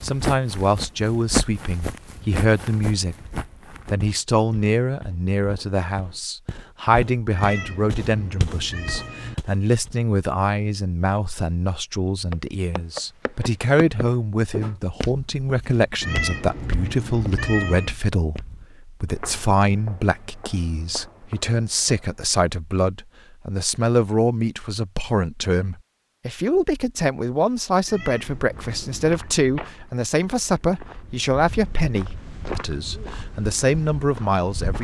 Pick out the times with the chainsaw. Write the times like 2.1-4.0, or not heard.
not heard.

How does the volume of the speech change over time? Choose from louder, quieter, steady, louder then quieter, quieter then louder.
steady.